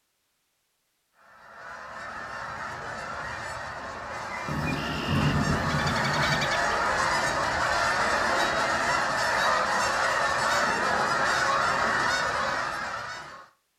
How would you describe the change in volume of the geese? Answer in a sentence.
The volume of the geese goes up.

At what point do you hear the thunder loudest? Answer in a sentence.
The loudest moment of the thunder is at 5 seconds.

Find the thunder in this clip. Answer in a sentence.
You can hear the thunder from 4.5 to 6.5 s.